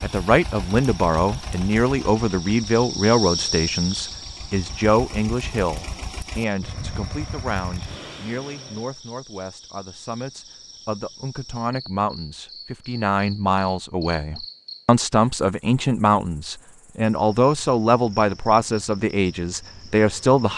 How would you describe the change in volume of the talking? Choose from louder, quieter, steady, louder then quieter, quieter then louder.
quieter then louder.